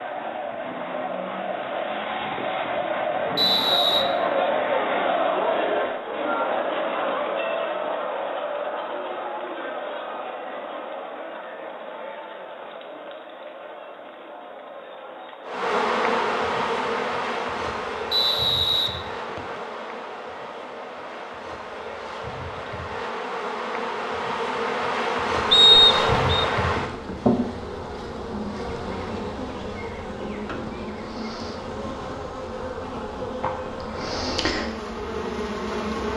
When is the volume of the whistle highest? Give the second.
26 s.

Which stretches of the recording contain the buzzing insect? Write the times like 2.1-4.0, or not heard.
15.4-36.1.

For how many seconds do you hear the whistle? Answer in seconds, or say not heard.
3 s.